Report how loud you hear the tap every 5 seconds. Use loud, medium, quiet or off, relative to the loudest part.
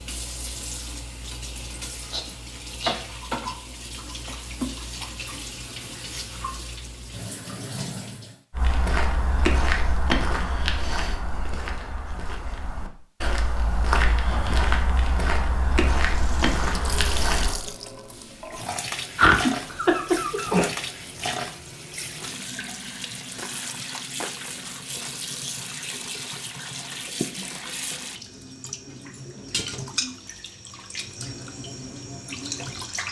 loud, loud, off, loud, loud, loud, loud.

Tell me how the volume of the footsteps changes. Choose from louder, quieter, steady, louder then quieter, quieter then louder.
quieter then louder.